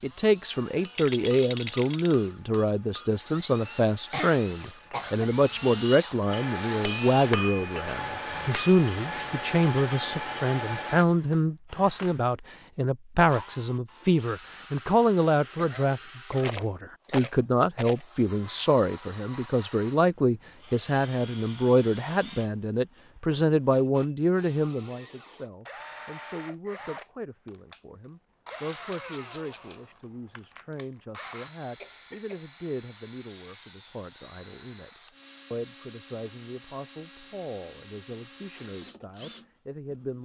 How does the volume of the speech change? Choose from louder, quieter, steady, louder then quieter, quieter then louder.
quieter.